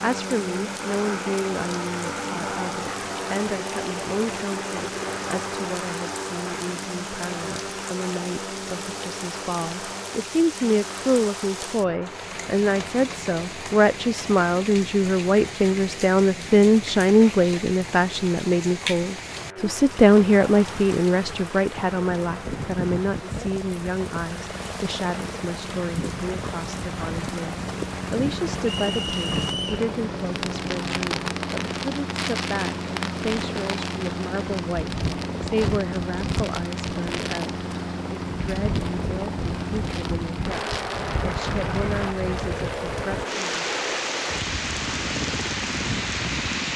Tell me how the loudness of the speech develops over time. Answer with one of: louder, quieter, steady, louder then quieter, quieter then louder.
louder then quieter.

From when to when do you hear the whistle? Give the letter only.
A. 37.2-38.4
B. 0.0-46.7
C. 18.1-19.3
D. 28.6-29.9
D.